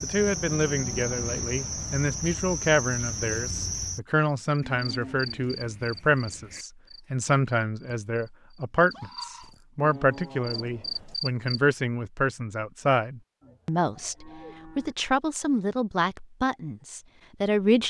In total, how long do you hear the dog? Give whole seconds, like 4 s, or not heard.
not heard.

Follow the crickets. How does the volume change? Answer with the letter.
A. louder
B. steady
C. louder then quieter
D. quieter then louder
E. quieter
D.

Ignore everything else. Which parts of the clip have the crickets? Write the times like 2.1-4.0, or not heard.
0.0-11.6.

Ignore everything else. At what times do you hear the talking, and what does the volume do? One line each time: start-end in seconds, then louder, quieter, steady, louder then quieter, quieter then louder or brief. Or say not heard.
0.0-17.8 steady.